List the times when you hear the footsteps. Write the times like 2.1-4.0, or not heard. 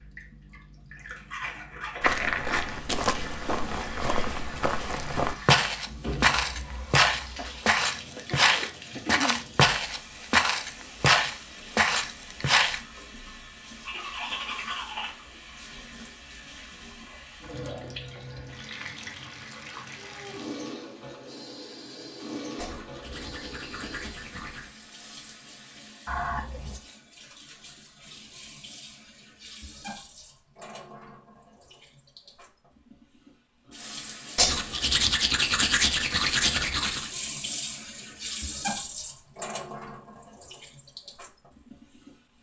2.0-12.8.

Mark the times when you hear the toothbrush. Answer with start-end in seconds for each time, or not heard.
0.9-2.2, 13.8-15.1, 22.6-24.7, 34.4-37.1.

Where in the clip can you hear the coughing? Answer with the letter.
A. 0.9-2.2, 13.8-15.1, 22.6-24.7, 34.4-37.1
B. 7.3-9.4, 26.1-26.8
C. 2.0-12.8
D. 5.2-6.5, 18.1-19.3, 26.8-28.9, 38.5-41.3
B.